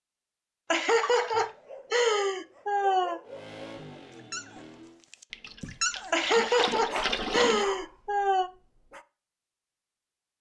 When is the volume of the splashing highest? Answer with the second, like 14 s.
7 s.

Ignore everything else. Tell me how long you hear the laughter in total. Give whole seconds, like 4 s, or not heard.
5 s.